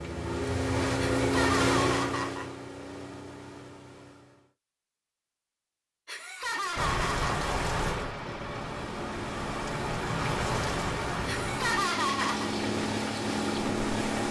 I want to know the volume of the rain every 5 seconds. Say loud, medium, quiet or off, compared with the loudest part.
off, loud, loud.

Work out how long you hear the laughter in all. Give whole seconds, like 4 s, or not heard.
4 s.